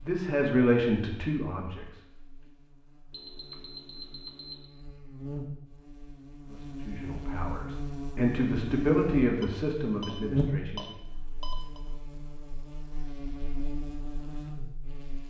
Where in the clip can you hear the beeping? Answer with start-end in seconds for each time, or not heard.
3.1-4.7, 9.4-10.2, 10.8-11.8.